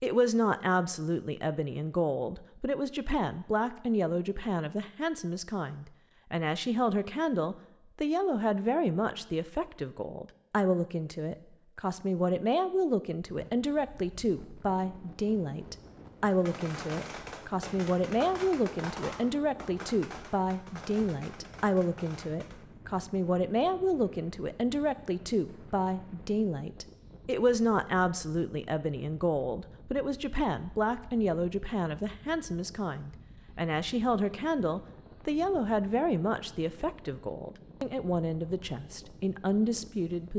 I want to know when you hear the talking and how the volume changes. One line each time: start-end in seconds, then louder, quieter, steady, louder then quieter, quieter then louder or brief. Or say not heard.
0.0-40.3 steady.